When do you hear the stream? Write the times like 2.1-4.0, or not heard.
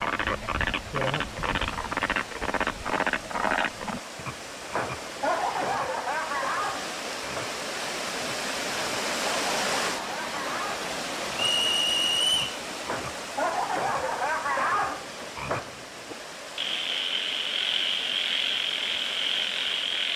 0.0-20.1.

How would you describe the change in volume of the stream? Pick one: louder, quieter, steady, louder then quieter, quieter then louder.
louder then quieter.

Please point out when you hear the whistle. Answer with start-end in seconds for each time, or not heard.
11.3-12.6.